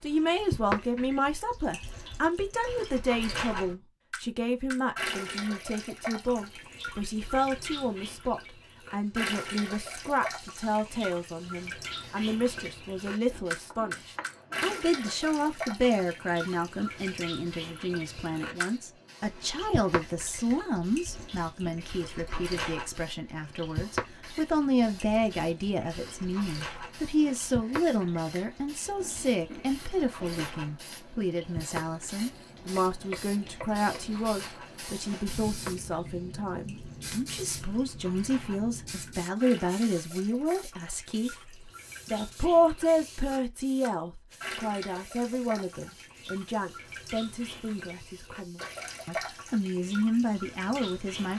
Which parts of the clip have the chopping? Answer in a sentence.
The chopping can be heard from 13.7 to 14.4 s and from 32.5 to 34.0 s.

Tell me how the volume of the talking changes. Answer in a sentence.
The loudness of the talking stays about the same.